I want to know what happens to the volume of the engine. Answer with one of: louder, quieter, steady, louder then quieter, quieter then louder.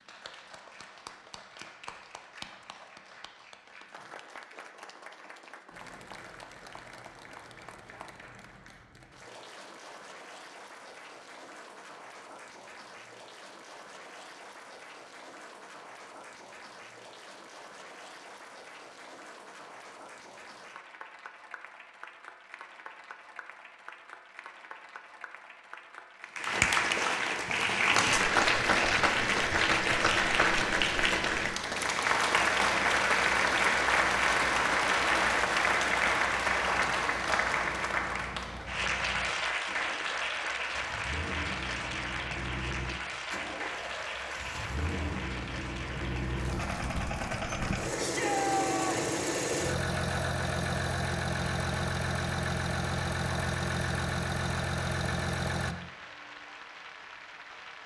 louder.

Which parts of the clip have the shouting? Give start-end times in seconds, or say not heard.
48.0-49.0.